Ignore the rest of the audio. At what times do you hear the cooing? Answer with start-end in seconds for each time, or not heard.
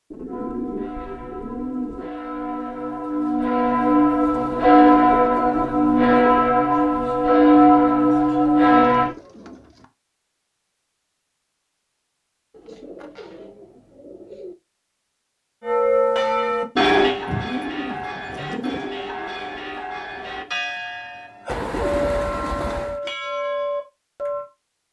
0.1-2.1, 4.3-6.5, 8.9-9.8, 12.5-14.6, 16.8-18.9, 21.4-23.0.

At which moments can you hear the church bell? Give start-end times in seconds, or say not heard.
0.2-9.1, 15.6-24.4.